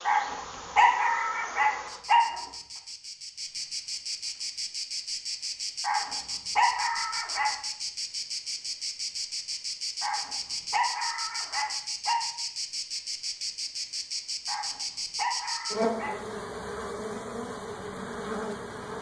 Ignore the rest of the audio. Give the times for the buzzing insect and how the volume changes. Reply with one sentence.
The buzzing insect can be heard from 0.0 to 18.9 s, getting louder.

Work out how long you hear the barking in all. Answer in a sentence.
The barking can be heard for 8 seconds in total.